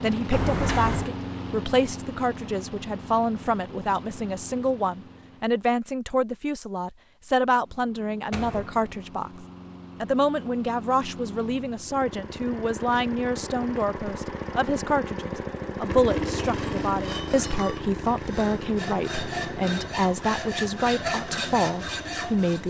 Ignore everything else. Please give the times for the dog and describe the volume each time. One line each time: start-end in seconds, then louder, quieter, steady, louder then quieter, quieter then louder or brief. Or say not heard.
not heard.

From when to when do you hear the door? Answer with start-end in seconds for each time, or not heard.
0.3-1.1, 8.3-8.9, 16.2-16.6.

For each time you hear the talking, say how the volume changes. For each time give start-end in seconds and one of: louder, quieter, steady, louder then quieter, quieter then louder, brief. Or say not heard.
0.0-22.6 steady.